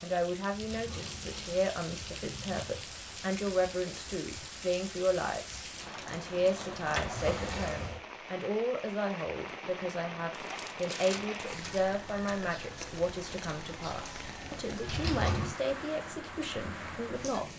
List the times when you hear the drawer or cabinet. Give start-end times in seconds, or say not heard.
0.5-2.9, 6.8-8.1, 14.8-15.5.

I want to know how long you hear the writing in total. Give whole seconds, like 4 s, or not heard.
not heard.